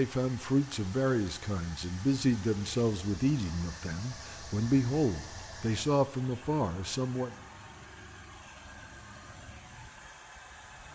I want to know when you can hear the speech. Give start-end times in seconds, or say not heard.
0.0-7.3.